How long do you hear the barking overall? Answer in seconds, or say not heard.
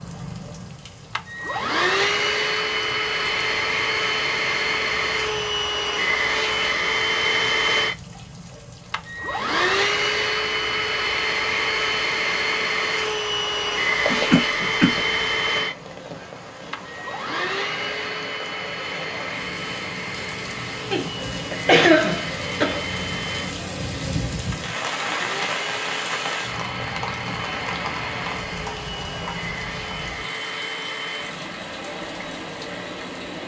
not heard.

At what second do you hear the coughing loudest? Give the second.
22 s.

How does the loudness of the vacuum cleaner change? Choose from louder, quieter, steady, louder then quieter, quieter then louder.
quieter.